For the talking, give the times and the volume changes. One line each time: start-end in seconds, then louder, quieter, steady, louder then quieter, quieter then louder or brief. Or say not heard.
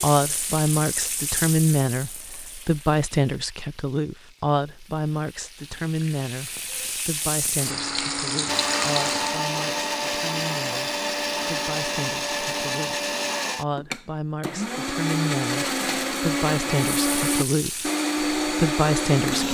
0.0-19.5 quieter then louder.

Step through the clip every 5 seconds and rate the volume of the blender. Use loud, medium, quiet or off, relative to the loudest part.
off, loud, loud, loud.